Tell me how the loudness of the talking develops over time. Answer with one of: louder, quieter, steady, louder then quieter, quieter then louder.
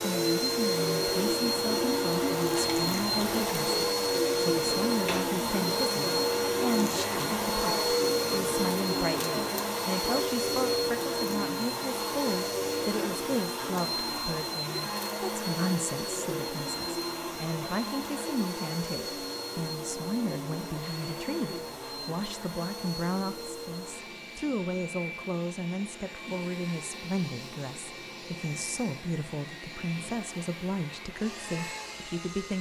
steady.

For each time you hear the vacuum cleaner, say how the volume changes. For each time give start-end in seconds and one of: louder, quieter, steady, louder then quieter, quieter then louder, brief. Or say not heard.
0.0-32.5 quieter.